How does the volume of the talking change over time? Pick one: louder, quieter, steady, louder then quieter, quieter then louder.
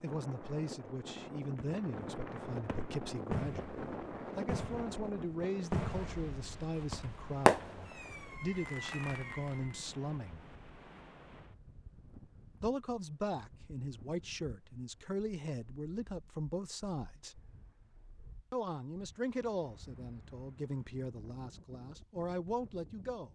steady.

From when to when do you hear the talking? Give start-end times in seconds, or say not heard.
0.0-10.5, 12.6-17.4, 18.5-23.3.